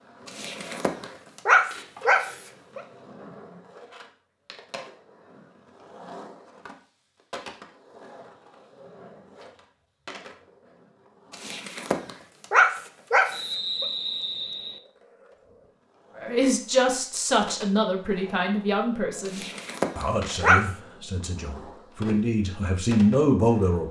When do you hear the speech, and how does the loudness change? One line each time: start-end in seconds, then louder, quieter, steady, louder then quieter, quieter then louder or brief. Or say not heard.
16.1-23.8 quieter then louder.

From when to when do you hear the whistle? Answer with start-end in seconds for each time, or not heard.
13.3-14.8.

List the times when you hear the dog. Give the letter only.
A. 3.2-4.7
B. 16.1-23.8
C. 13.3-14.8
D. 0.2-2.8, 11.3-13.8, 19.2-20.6
D.